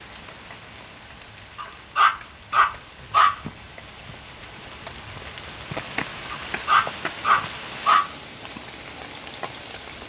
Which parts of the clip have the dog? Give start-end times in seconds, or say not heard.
1.6-3.4, 6.3-8.1.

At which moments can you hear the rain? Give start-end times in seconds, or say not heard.
0.0-10.0.